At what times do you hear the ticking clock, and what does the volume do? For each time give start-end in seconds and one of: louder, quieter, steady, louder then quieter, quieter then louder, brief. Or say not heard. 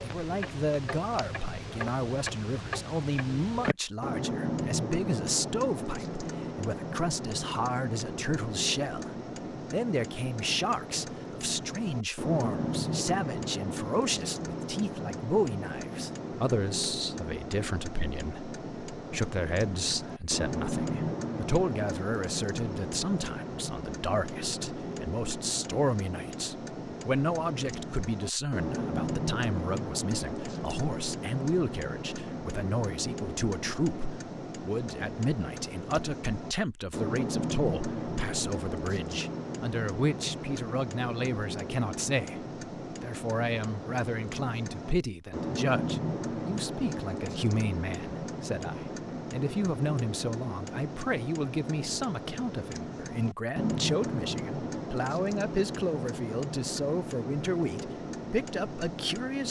0.0-59.4 steady.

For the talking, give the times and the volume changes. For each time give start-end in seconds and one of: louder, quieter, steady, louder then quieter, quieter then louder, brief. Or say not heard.
0.0-59.4 steady.